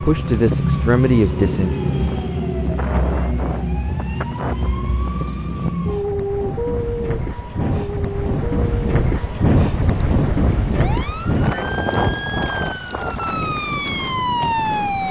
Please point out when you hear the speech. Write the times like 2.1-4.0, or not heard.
0.0-1.7.